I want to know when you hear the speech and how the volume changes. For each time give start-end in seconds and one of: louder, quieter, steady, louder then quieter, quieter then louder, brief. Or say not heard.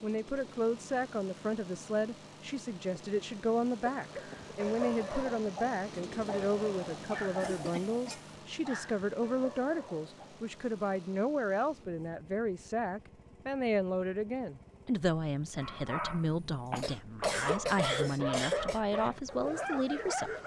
0.0-20.3 steady.